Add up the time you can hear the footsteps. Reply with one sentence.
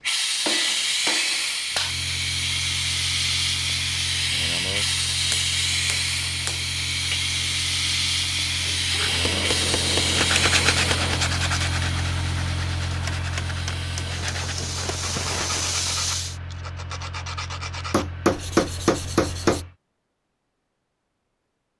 You can't hear the footsteps here.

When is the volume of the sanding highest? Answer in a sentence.
The loudest moment of the sanding is at 11 seconds.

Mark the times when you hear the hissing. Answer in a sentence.
The hissing can be heard from 0.0 to 16.4 s.